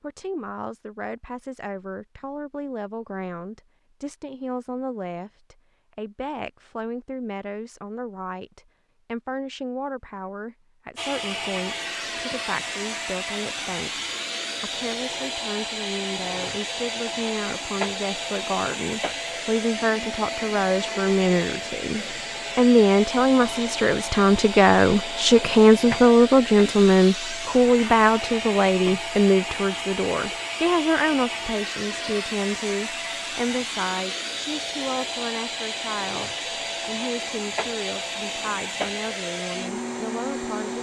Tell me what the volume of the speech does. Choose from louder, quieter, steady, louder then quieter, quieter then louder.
louder then quieter.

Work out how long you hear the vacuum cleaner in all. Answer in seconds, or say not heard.
30 s.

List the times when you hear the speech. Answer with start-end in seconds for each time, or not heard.
0.0-40.7.